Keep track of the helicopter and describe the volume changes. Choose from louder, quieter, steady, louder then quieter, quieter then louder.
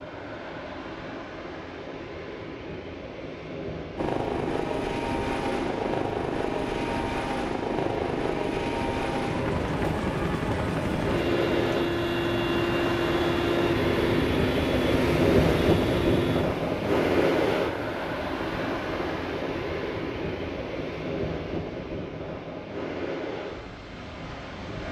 steady.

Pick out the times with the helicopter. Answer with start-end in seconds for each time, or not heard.
4.0-16.4.